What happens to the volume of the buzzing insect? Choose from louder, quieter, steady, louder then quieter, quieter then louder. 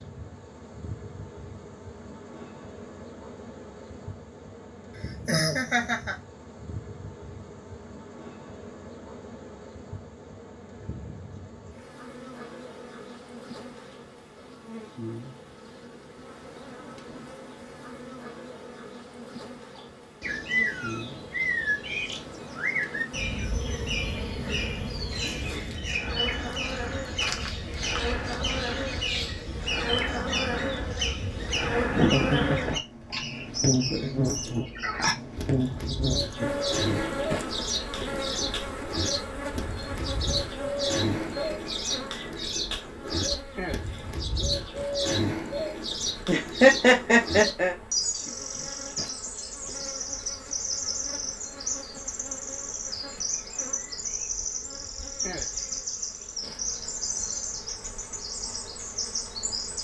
louder then quieter.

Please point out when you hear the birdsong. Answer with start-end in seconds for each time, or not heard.
19.8-59.7.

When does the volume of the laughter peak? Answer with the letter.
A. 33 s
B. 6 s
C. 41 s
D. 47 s
D.